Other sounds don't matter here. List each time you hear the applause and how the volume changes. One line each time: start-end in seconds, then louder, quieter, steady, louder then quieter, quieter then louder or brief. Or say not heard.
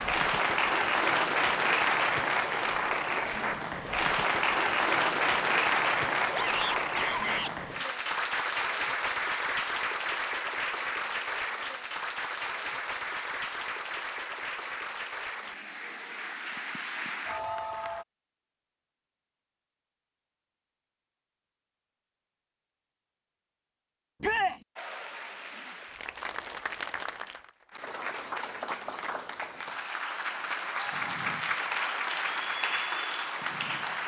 0.0-18.1 quieter
24.8-34.0 louder.